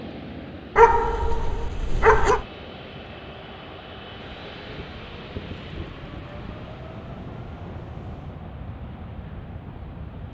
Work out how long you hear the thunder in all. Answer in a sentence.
You can hear the thunder for 4 seconds altogether.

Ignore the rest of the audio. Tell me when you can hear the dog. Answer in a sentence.
You can hear the dog from 0.8 to 2.5 s.